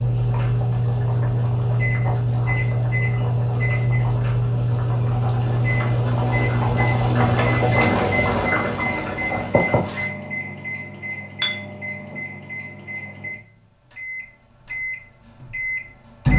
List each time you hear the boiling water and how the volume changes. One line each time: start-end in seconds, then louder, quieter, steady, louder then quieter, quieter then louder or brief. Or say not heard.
0.0-10.1 louder.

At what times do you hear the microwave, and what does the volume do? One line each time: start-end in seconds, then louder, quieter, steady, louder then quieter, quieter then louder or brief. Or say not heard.
0.0-16.3 quieter.